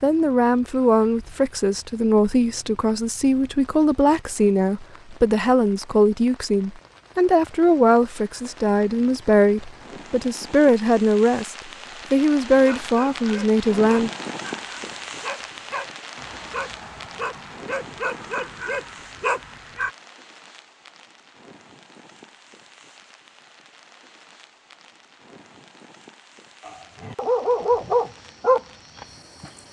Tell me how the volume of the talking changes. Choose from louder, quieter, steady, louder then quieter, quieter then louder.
steady.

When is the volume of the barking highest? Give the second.
28 s.